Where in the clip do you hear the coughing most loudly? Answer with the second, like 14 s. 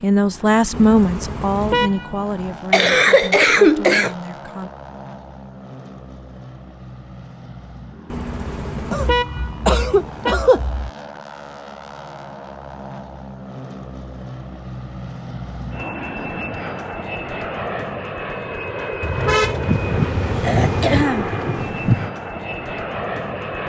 4 s.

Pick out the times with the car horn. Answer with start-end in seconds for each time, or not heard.
0.7-2.5, 8.1-10.3, 19.0-21.1.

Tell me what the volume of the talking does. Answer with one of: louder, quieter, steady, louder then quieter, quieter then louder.
quieter.